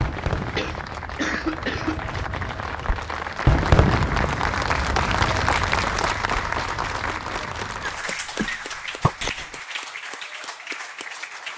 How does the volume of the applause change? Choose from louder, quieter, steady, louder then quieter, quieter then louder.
louder then quieter.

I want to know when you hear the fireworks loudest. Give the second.
4 s.